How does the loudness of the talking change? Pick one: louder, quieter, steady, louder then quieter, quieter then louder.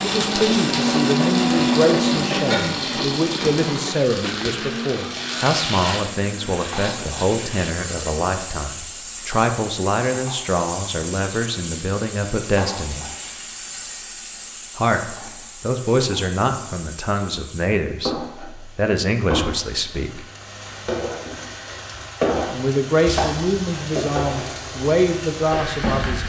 steady.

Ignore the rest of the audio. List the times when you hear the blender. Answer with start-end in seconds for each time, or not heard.
0.0-8.2.